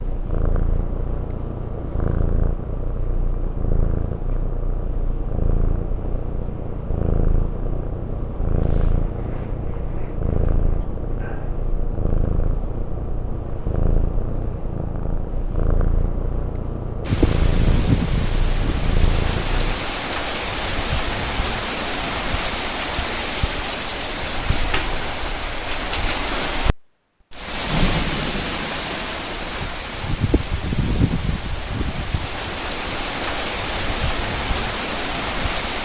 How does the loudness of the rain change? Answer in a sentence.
The volume of the rain stays about the same.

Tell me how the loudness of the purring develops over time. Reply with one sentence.
The loudness of the purring stays about the same.